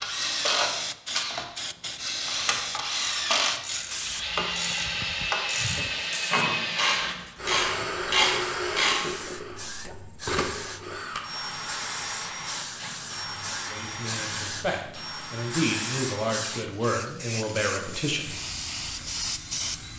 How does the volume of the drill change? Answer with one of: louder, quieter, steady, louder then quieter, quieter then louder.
quieter.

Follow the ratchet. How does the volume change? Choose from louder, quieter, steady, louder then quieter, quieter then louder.
louder.